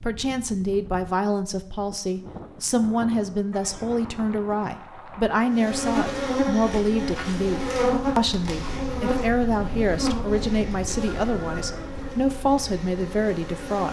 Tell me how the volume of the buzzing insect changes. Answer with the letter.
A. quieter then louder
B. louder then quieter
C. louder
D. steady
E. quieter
E.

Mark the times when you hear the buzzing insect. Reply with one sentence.
The buzzing insect can be heard from 5.4 to 13.8 s.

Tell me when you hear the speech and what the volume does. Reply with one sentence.
The speech can be heard from 0.0 to 13.8 s, at a steady volume.